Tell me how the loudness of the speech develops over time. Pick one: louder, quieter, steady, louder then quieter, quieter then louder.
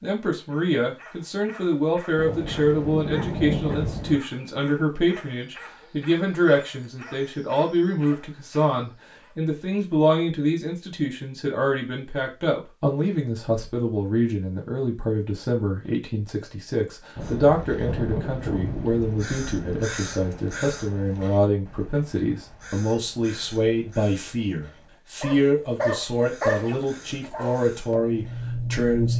steady.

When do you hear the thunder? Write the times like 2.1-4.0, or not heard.
2.1-4.2, 17.1-19.7.